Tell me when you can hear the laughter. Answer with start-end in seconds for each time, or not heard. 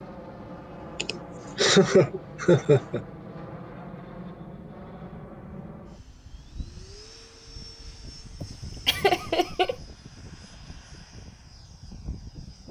0.9-3.0, 8.4-9.8.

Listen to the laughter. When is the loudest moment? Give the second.
2 s.